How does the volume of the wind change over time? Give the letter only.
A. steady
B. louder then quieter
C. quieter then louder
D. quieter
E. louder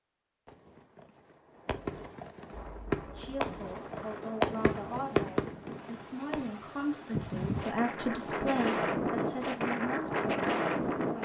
E.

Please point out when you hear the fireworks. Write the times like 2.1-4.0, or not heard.
0.5-6.5.